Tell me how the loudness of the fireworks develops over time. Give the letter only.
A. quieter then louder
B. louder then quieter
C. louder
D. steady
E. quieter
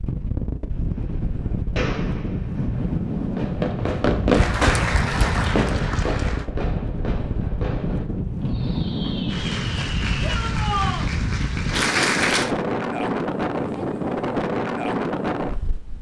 B.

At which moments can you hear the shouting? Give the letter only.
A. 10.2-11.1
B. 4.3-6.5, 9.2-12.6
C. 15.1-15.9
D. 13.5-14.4
A.